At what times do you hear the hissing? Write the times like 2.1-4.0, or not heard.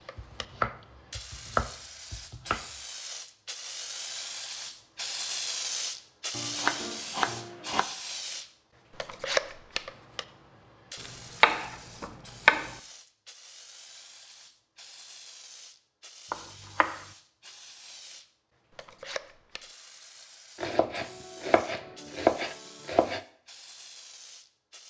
0.0-24.8.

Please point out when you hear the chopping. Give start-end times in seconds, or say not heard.
0.1-2.6, 6.3-7.8, 11.0-12.7, 16.3-16.9, 20.6-23.2.